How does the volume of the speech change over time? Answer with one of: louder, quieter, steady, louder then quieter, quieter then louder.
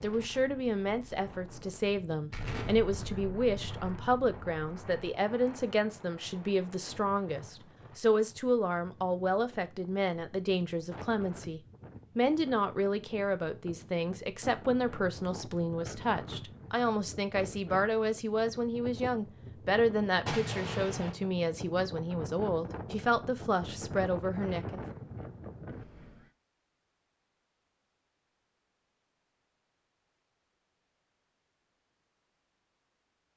steady.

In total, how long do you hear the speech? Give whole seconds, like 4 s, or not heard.
25 s.